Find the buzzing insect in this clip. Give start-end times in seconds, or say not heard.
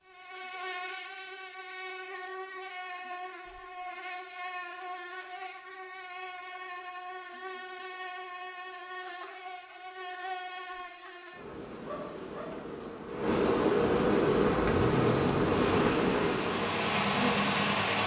0.0-18.0.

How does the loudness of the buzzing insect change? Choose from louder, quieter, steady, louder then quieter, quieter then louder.
louder.